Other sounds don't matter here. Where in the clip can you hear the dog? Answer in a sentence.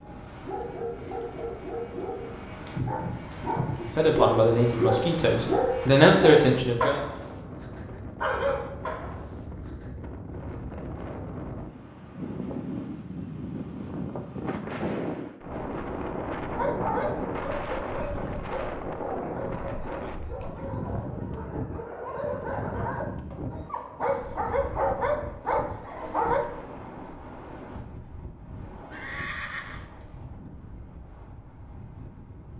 The dog can be heard from 0.0 to 9.8 s and from 16.5 to 26.4 s.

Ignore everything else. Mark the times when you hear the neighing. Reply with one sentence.
You can hear the neighing from 28.9 to 29.9 s.